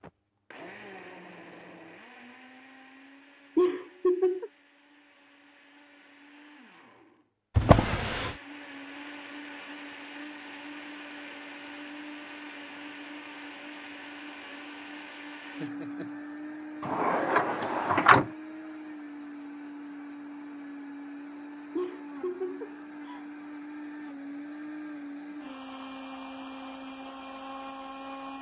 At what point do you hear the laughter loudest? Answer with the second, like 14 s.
4 s.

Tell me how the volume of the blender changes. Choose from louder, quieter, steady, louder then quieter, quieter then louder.
louder.